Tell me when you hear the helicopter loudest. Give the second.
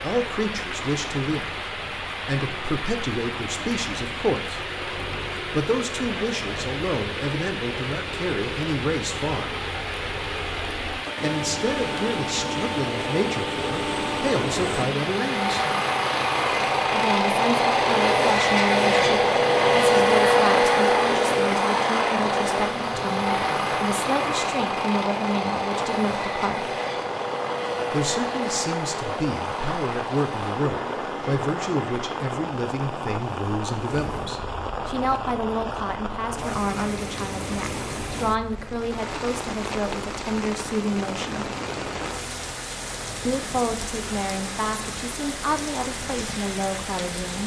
20 s.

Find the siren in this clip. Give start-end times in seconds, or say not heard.
not heard.